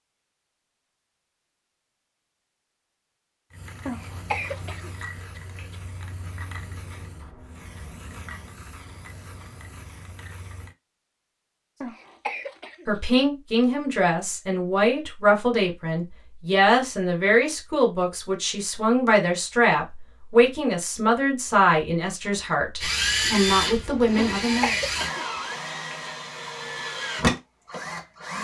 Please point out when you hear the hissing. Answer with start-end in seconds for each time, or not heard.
3.5-10.8.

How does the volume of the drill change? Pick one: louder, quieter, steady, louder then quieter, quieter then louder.
quieter then louder.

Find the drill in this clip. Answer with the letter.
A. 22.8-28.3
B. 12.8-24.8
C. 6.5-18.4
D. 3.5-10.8
A.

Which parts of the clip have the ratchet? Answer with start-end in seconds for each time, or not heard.
not heard.